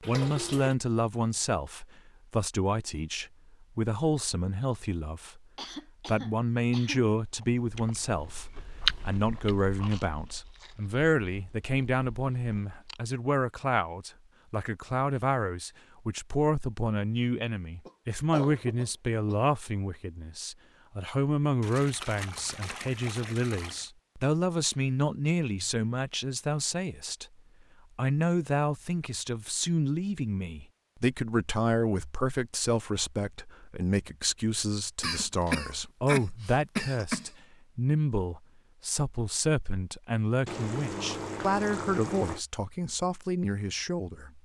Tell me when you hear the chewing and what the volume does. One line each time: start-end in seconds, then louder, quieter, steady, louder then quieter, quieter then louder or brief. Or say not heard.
7.2-13.0 louder then quieter.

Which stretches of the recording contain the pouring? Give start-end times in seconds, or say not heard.
0.0-0.8, 21.6-23.9, 40.5-42.4.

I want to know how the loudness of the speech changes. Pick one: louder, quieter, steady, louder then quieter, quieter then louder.
steady.